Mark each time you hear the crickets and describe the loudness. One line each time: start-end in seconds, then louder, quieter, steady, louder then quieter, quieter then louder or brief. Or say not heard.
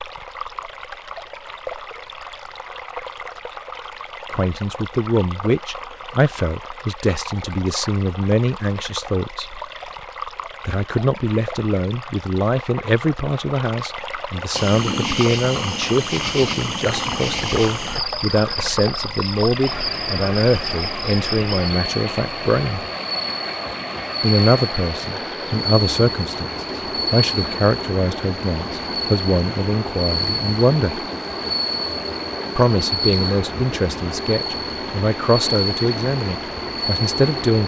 14.5-37.6 steady.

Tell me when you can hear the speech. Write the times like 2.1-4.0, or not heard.
4.3-9.6, 10.7-22.9, 24.2-31.0, 32.5-37.6.